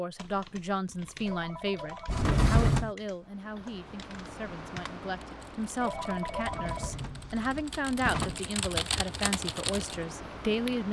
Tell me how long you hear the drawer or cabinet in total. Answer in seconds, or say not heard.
3 s.